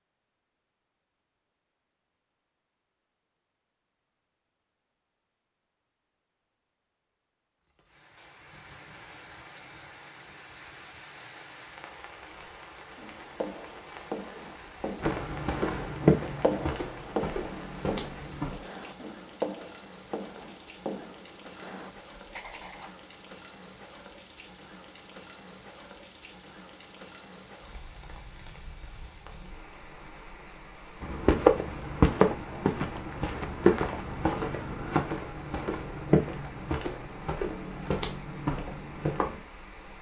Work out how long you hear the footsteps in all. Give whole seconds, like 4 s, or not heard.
12 s.